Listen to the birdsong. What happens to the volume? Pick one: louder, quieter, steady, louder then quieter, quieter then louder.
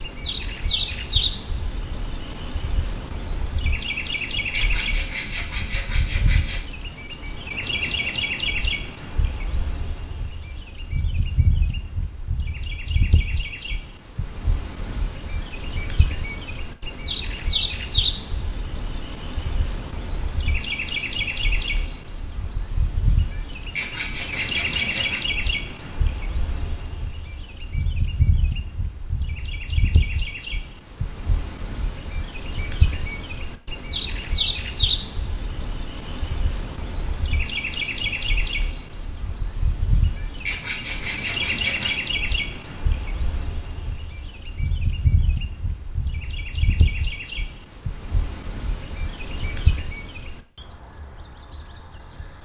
steady.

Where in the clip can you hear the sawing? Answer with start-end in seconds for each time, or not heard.
4.5-6.6, 23.8-25.2, 40.5-42.1.